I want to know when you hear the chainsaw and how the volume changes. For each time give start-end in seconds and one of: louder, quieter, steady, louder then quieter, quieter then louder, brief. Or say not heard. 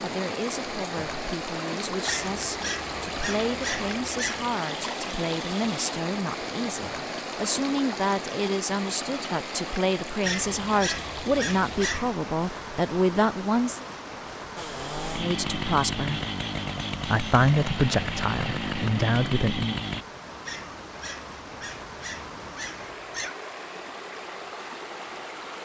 14.6-20.1 steady.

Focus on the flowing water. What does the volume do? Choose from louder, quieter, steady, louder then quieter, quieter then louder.
quieter.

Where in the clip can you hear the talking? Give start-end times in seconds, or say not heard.
0.0-13.8, 15.2-16.2, 17.1-19.8.